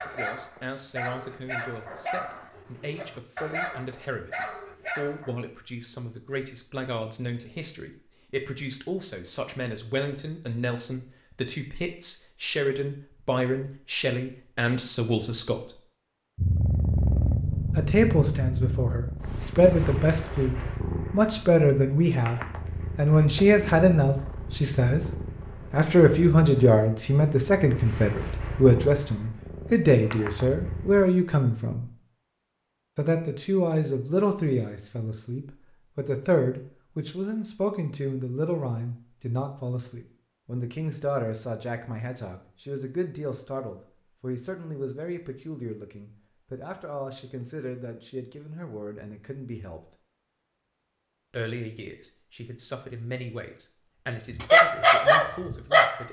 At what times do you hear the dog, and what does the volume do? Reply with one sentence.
The dog can be heard from 0.0 to 5.3 s, getting quieter then louder; and briefly from 54.3 to 56.0 s.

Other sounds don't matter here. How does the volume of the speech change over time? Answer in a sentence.
The loudness of the speech goes up, then down.